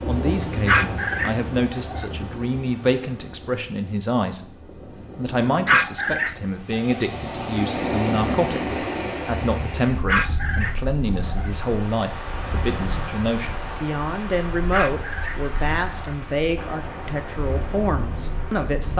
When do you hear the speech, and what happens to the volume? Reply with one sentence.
The speech can be heard from 0.0 to 18.9 s, at a steady volume.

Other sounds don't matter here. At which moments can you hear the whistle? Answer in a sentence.
You can't hear the whistle here.